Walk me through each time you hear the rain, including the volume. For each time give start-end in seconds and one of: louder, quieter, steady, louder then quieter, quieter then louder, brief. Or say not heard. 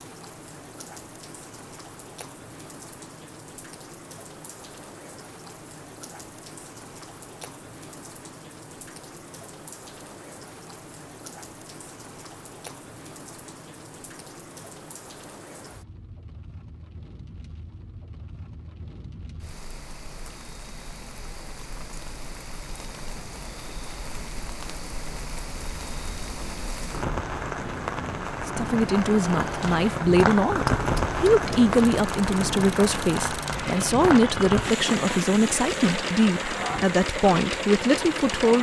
0.0-38.5 louder.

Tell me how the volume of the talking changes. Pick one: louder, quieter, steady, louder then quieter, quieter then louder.
steady.